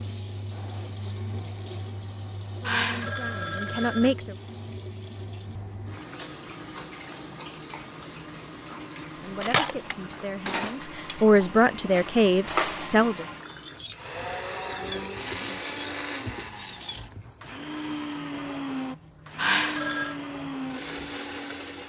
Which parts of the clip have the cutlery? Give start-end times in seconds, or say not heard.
9.1-17.0.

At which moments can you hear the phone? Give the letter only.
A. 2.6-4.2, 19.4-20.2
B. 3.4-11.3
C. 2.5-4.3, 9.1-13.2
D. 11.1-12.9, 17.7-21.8
A.